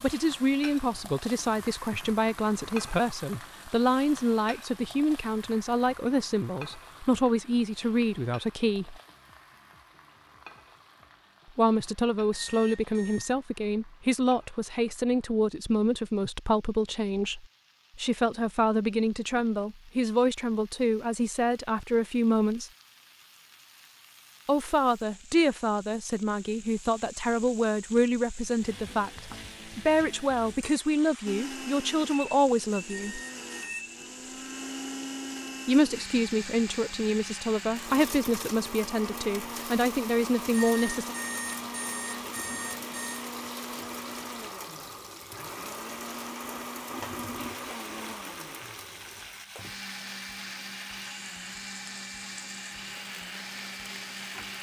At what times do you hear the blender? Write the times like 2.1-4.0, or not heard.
31.2-54.5.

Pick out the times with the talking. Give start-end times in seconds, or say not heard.
0.0-8.9, 11.6-22.7, 24.4-33.2, 35.6-41.1.